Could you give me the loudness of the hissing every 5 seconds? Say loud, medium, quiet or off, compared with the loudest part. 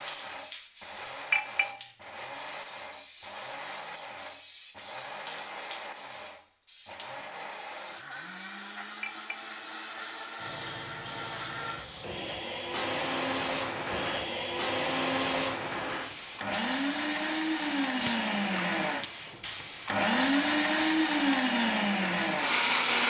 medium, medium, loud, loud, loud.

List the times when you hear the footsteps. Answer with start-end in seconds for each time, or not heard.
not heard.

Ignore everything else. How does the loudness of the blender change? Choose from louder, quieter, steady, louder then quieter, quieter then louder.
louder.